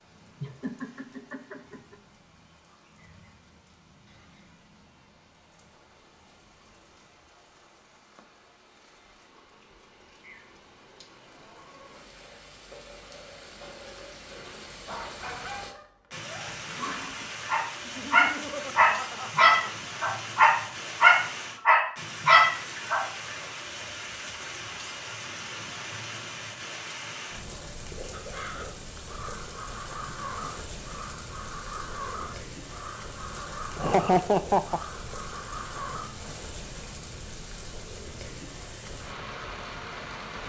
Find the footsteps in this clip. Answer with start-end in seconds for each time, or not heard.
not heard.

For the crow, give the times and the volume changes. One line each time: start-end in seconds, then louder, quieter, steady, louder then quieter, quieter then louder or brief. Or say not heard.
28.1-36.0 steady.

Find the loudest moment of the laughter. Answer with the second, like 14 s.
34 s.